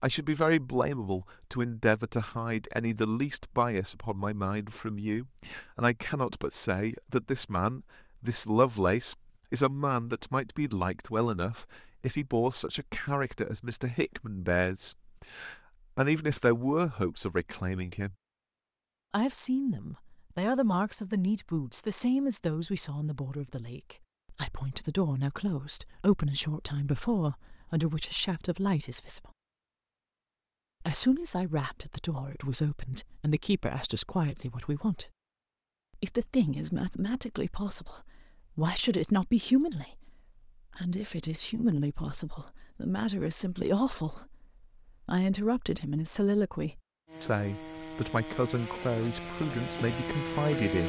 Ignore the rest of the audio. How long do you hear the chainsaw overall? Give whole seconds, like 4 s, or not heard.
4 s.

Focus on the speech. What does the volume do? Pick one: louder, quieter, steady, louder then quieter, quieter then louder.
steady.